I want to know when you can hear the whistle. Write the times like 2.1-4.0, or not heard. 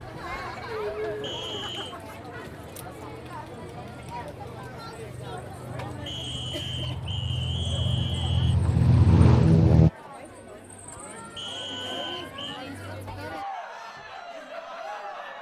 1.2-1.9, 6.0-8.6, 11.3-12.7.